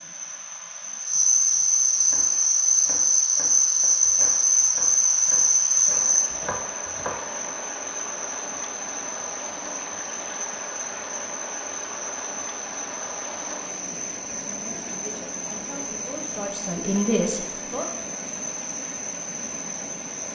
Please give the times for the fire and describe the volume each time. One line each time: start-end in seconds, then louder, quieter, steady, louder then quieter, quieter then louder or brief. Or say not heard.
not heard.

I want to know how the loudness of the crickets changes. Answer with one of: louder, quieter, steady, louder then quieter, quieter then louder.
quieter.